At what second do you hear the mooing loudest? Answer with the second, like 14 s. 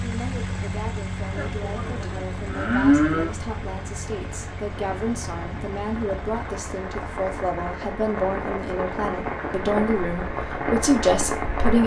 3 s.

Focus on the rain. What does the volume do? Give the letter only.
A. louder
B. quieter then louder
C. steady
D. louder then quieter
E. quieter
A.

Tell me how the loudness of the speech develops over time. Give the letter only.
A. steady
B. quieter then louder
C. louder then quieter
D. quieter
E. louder
E.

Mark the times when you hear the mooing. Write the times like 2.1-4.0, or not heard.
1.4-3.3.